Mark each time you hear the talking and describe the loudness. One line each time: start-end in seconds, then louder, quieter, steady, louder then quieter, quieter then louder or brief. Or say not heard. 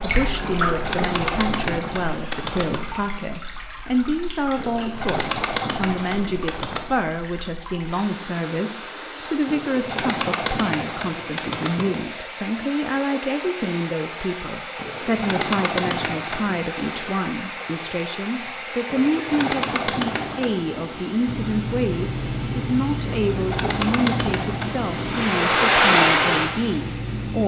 0.0-27.4 steady.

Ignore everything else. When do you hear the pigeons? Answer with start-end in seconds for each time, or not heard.
0.6-2.9, 4.5-7.0, 9.4-11.9, 14.8-16.6, 18.9-20.6, 23.3-24.9.